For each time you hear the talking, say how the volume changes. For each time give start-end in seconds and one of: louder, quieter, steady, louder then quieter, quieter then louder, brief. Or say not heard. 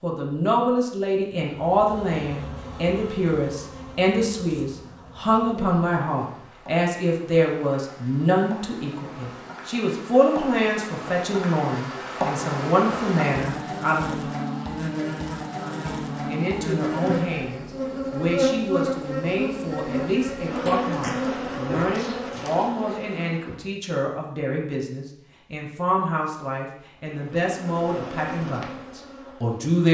0.0-14.3 steady
15.6-29.8 steady.